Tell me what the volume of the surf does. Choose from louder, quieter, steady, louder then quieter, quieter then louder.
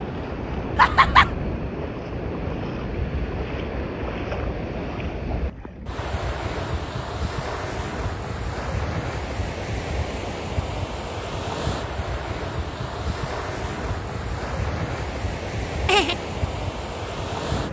steady.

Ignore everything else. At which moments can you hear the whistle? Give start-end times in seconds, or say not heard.
not heard.